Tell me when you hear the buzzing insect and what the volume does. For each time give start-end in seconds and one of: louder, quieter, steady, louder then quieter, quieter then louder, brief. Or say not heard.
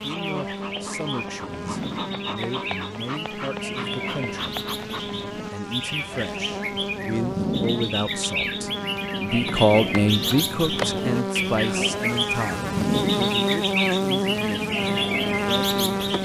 0.0-16.2 louder.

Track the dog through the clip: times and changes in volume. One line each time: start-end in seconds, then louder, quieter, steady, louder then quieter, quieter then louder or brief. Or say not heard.
not heard.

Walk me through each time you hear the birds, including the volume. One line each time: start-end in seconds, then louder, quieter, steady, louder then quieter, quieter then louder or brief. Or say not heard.
0.0-16.2 louder.